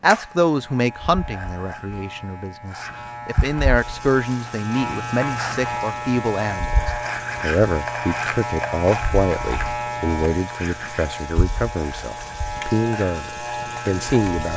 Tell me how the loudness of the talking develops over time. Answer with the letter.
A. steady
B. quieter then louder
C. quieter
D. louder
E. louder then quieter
A.